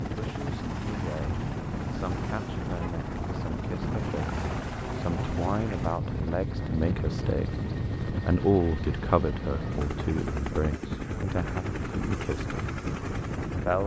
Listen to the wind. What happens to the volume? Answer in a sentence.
The volume of the wind stays about the same.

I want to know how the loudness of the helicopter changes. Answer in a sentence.
The loudness of the helicopter stays about the same.